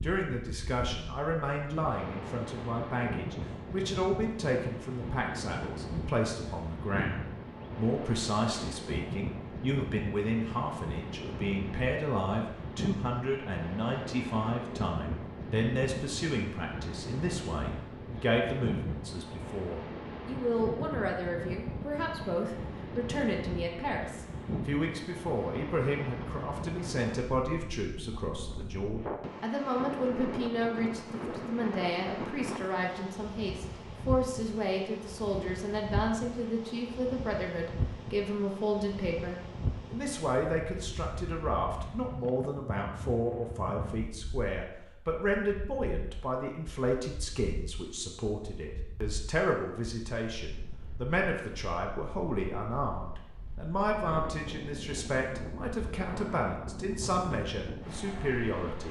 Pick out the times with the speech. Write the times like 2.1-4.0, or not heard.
0.0-58.8.